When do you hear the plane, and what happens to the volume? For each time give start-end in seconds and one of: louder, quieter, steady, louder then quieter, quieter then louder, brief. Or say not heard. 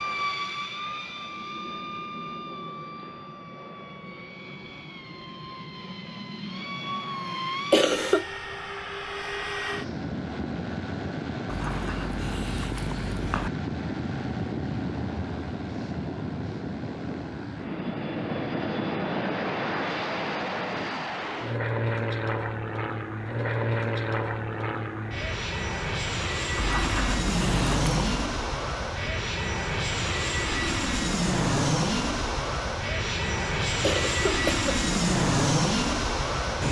0.0-36.6 louder.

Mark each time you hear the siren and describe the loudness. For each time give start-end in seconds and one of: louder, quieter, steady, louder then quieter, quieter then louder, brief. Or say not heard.
not heard.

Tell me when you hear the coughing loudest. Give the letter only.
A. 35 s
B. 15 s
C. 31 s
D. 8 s
D.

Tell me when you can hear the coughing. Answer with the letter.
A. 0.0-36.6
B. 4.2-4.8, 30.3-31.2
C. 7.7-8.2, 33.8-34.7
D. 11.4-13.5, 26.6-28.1
C.